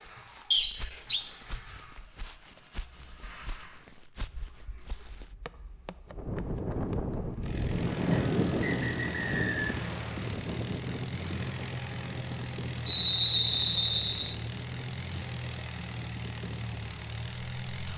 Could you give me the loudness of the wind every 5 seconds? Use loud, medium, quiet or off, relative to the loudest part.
off, loud, medium, quiet.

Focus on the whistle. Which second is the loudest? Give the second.
13 s.